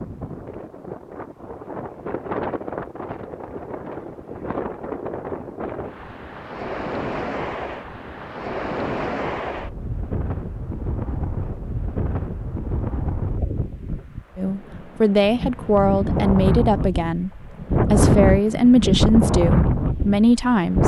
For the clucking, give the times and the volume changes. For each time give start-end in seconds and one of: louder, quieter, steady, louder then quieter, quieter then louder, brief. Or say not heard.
not heard.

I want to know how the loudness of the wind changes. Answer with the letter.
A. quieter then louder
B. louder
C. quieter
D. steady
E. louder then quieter
B.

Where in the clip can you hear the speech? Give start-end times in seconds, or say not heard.
14.3-20.8.